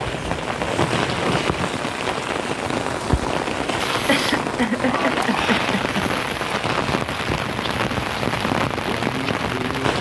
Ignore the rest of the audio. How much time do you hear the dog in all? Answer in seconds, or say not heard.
not heard.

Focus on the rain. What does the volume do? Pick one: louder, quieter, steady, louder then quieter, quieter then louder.
steady.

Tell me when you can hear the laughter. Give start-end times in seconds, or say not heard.
4.0-6.0.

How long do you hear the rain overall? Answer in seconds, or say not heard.
10 s.